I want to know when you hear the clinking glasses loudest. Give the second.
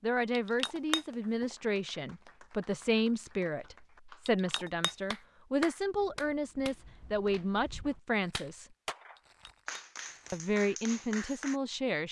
1 s.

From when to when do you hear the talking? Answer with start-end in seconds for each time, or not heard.
0.0-8.7, 10.3-12.0.